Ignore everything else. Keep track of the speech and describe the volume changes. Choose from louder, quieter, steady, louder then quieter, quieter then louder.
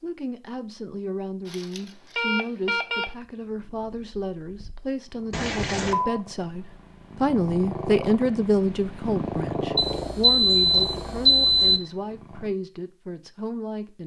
louder then quieter.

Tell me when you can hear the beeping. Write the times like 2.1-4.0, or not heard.
1.4-3.0, 5.3-6.2, 9.8-11.8.